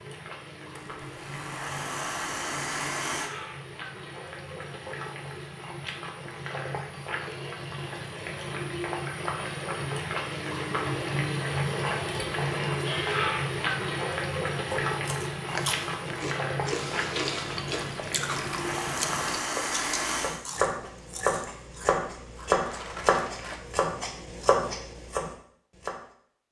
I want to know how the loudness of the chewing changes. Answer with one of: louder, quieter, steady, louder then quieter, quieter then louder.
quieter.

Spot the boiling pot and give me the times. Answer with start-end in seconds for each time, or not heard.
0.0-19.4.